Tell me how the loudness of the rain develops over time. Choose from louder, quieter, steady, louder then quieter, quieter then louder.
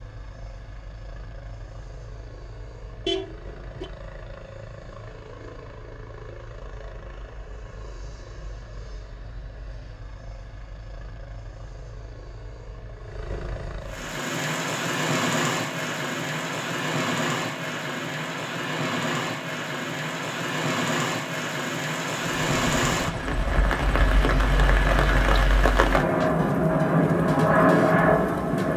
louder.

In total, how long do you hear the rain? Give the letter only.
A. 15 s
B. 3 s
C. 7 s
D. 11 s
A.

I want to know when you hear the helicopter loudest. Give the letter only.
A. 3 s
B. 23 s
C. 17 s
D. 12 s
B.